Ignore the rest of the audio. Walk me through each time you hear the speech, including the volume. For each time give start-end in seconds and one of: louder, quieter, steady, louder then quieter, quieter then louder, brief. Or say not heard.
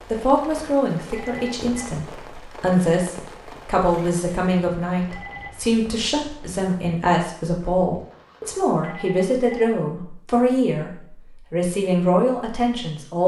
0.1-13.2 steady.